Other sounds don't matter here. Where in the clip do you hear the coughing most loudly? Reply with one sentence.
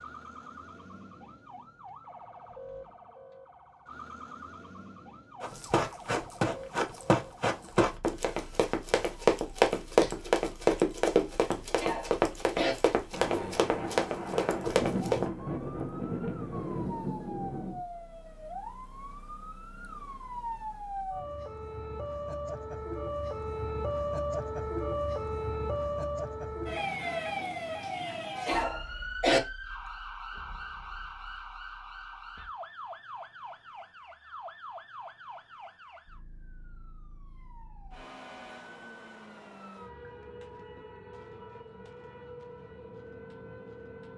The loudest moment of the coughing is at 29 seconds.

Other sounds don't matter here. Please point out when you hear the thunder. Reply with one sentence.
You can hear the thunder from 13.1 to 17.9 s.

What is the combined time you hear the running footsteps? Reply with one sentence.
You can hear the running footsteps for 10 seconds altogether.